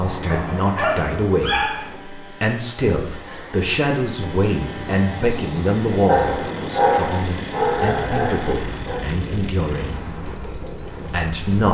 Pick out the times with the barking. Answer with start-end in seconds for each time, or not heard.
0.3-1.9, 6.0-9.1.